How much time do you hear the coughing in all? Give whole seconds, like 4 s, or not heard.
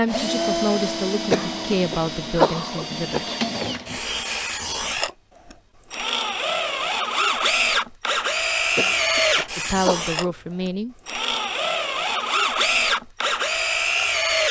4 s.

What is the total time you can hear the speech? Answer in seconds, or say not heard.
5 s.